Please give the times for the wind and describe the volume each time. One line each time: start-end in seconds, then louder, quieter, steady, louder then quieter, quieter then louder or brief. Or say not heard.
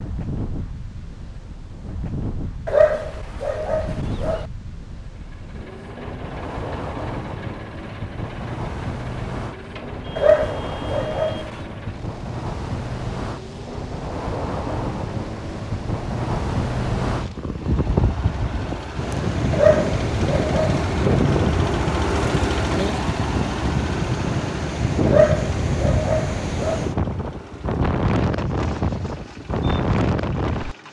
0.0-30.8 louder.